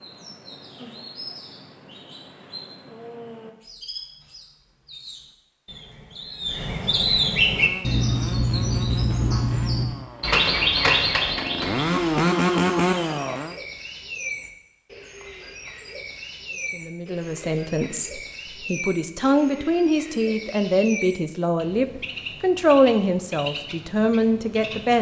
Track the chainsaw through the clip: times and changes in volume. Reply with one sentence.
You can hear the chainsaw from 7.5 to 13.6 s, getting louder.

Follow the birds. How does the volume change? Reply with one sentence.
The loudness of the birds goes up, then down.